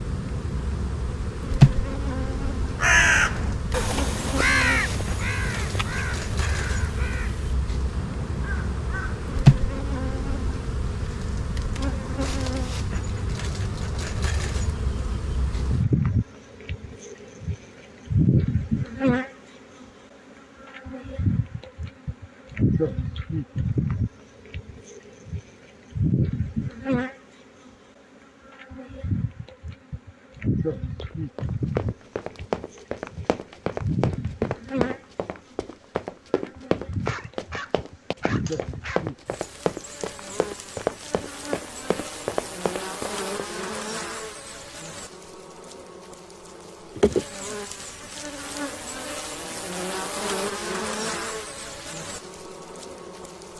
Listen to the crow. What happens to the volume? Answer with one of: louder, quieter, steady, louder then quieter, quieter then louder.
quieter.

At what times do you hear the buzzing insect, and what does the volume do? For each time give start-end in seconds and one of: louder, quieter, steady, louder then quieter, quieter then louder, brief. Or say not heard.
0.0-53.5 quieter.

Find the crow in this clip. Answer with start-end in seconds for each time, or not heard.
2.8-9.4.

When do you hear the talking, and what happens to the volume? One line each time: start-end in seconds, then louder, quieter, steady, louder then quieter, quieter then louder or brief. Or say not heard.
not heard.